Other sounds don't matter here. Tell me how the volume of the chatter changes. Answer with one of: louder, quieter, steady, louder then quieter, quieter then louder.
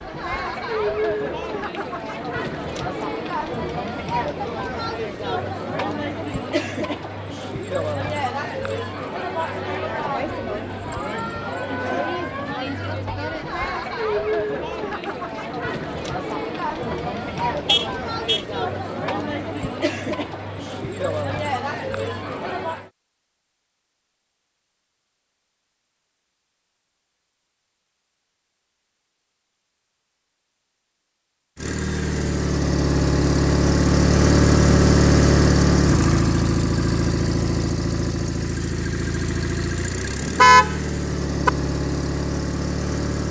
steady.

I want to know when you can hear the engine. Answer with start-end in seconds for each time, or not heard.
31.6-43.2.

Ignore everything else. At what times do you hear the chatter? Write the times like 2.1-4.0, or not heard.
0.0-22.9.